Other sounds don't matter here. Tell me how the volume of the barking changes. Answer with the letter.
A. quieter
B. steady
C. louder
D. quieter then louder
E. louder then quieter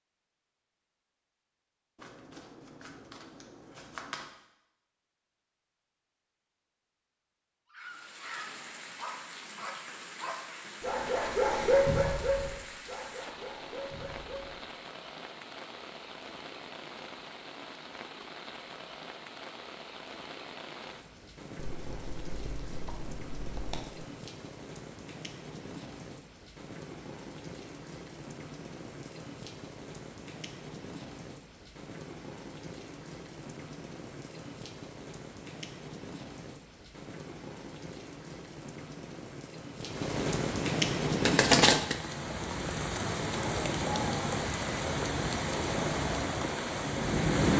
E.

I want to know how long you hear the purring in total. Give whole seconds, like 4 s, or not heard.
not heard.